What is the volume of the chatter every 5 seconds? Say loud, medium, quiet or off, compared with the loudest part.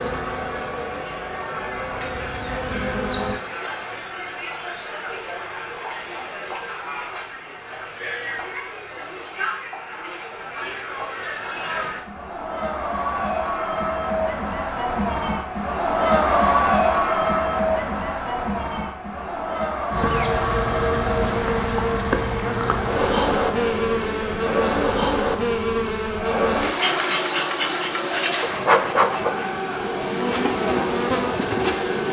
medium, medium, medium, loud, medium, medium, medium.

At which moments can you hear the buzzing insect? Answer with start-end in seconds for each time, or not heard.
0.0-3.4, 19.9-32.0.